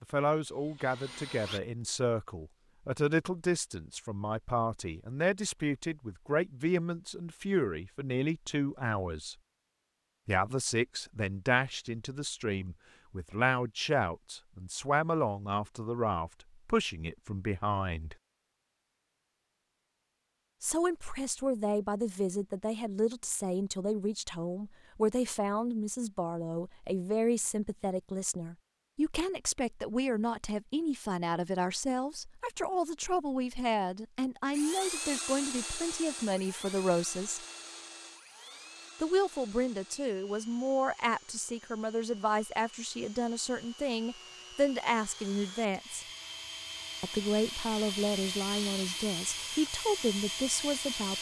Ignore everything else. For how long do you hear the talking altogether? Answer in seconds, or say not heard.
45 s.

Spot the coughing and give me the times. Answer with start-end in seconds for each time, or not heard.
not heard.